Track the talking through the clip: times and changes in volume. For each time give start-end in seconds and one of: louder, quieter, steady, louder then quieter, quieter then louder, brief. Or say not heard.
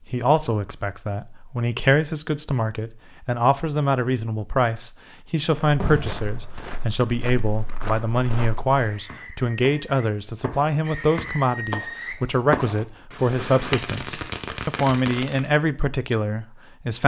0.1-17.0 steady.